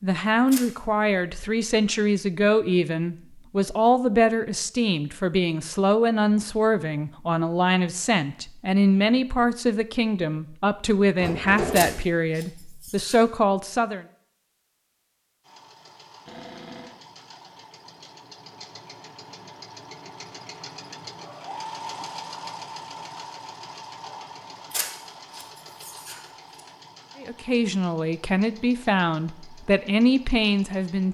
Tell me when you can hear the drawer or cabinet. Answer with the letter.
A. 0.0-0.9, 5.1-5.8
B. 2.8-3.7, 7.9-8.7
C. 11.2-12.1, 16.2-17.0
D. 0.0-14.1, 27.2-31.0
C.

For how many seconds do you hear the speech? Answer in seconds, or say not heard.
18 s.